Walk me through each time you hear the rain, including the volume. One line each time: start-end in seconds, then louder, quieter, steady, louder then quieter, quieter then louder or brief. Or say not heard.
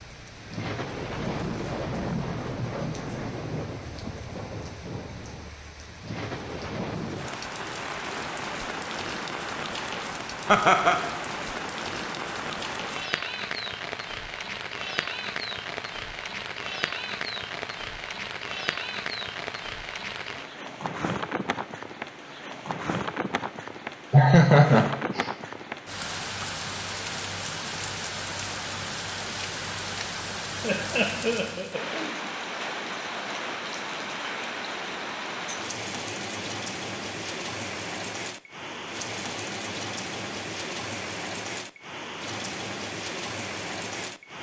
0.0-44.3 steady.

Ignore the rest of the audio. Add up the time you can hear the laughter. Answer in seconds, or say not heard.
3 s.